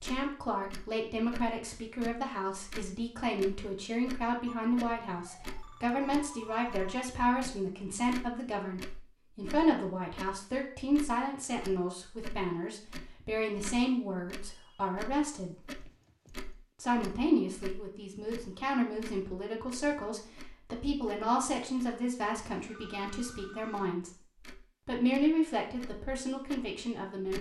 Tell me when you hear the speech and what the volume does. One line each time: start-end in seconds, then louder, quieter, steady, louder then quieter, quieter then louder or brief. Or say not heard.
0.0-15.6 steady
16.8-24.1 quieter
24.9-27.3 brief.